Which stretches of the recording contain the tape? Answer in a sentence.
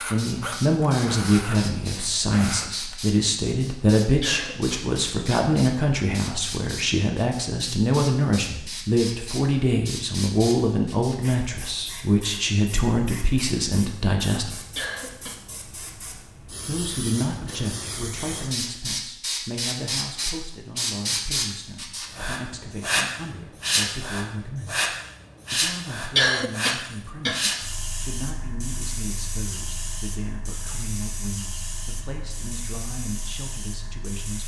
The tape can't be heard in this clip.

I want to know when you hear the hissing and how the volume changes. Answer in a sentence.
The hissing can be heard from 0.0 to 34.4 s, getting louder then quieter.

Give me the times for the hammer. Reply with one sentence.
You can't hear the hammer here.